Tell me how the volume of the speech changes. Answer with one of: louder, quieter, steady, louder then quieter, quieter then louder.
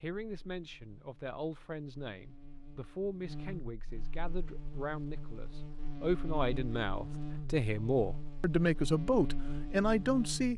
louder.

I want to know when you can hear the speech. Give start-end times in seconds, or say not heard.
0.0-10.5.